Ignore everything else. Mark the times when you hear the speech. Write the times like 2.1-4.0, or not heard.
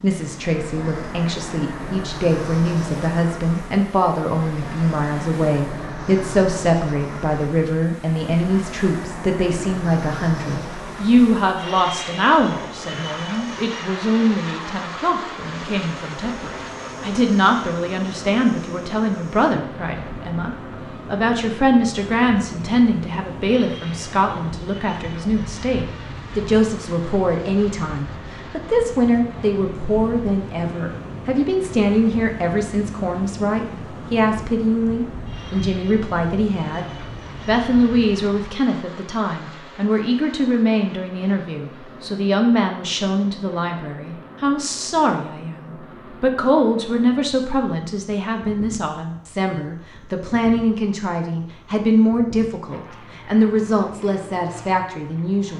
0.0-36.9, 37.5-55.5.